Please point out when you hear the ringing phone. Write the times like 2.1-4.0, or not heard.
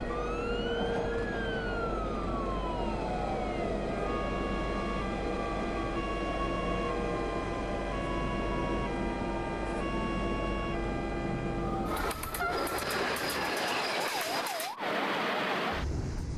not heard.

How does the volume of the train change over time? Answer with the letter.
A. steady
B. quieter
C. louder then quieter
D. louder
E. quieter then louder
A.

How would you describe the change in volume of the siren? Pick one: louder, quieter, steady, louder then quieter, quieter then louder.
steady.